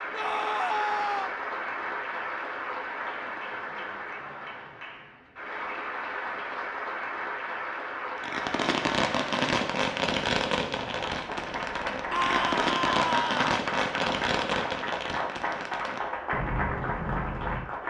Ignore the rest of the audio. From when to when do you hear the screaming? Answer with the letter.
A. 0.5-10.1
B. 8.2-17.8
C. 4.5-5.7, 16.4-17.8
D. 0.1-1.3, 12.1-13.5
D.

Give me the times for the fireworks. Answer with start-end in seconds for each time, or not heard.
8.2-17.8.